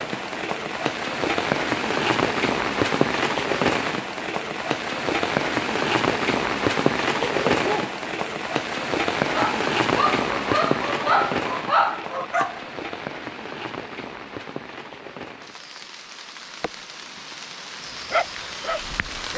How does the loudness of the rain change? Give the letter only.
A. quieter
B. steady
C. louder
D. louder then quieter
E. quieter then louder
A.